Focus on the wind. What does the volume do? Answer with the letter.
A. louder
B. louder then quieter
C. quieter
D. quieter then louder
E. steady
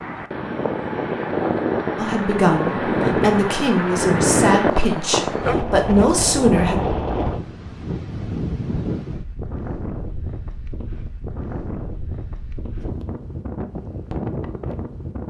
C.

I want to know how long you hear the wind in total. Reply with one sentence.
You can hear the wind for 15 seconds altogether.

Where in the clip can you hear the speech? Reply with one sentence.
The speech can be heard from 1.9 to 6.8 s.